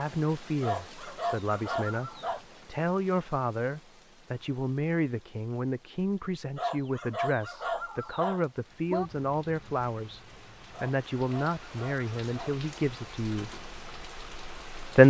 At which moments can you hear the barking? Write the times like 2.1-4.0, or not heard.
0.6-2.4, 6.5-8.4, 10.7-12.6.